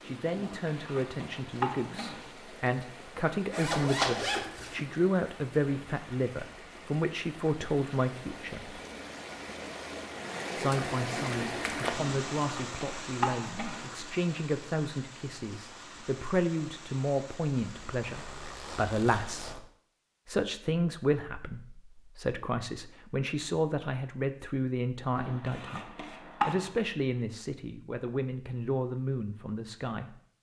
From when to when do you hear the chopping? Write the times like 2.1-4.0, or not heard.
0.3-2.3, 11.9-13.9, 25.1-26.8.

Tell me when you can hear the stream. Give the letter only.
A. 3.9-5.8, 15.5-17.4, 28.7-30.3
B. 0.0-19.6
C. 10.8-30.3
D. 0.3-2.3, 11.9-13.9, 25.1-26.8
B.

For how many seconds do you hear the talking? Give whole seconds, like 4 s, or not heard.
28 s.